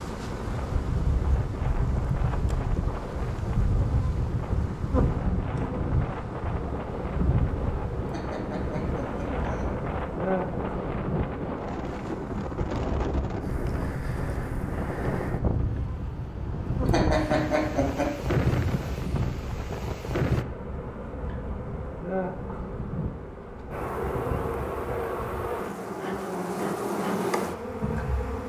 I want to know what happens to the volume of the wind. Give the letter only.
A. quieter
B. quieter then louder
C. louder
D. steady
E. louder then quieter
C.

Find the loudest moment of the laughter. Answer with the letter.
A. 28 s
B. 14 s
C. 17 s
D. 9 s
C.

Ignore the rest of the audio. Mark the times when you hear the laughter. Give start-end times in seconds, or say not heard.
8.1-9.7, 16.9-18.2.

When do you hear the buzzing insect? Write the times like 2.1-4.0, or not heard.
0.0-28.4.